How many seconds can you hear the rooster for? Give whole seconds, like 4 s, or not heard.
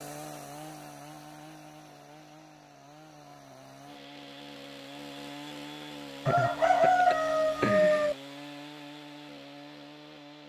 2 s.